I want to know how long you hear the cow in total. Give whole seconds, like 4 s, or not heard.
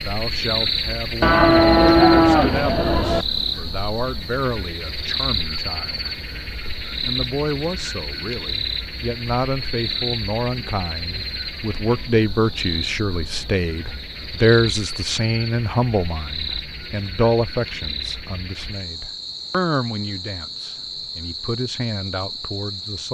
2 s.